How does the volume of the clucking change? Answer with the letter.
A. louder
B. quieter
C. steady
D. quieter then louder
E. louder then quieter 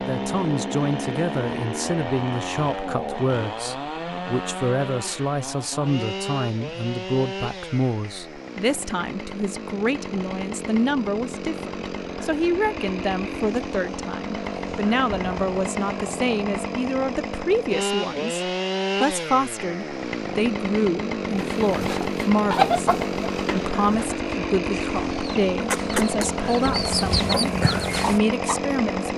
D.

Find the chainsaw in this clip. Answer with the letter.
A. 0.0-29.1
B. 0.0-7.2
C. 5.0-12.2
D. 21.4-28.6
A.